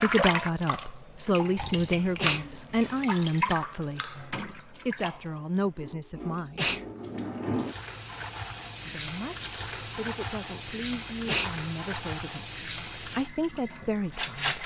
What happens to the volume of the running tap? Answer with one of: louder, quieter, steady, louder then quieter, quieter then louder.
steady.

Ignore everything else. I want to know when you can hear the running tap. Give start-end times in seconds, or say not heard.
0.0-14.6.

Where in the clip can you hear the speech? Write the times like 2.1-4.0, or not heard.
0.0-6.8, 8.8-14.6.